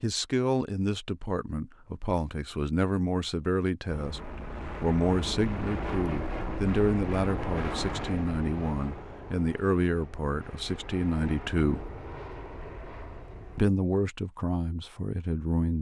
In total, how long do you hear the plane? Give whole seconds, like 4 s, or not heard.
10 s.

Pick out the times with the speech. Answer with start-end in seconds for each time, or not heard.
0.0-11.8, 13.6-15.7.